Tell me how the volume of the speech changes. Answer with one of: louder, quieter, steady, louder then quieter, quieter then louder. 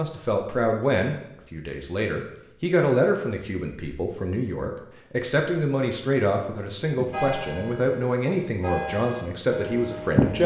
steady.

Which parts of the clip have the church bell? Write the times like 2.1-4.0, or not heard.
7.0-10.4.